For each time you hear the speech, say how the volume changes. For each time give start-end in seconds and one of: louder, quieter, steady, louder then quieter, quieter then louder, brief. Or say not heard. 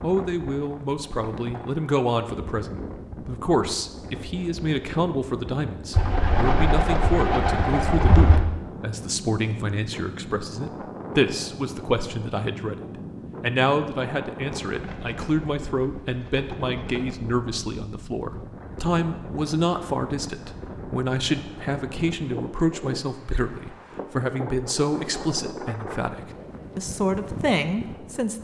0.0-28.4 steady.